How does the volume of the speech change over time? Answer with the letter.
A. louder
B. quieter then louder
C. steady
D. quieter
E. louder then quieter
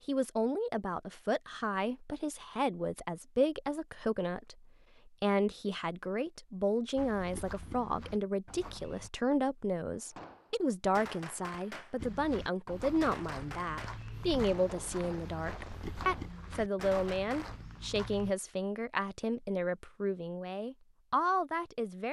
C.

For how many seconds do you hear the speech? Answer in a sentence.
You can hear the speech for 22 seconds altogether.